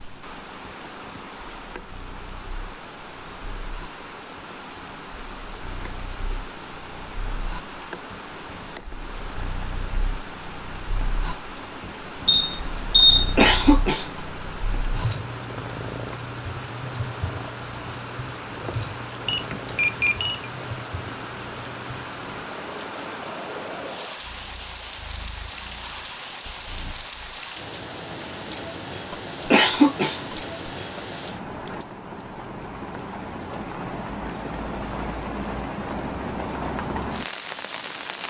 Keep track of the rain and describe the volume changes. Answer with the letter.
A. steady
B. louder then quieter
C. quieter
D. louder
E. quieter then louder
D.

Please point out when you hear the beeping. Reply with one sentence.
The beeping can be heard from 12.2 to 13.3 s and from 19.2 to 20.5 s.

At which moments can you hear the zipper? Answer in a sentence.
You can't hear the zipper here.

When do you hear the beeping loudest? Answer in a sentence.
The loudest moment of the beeping is at 13 seconds.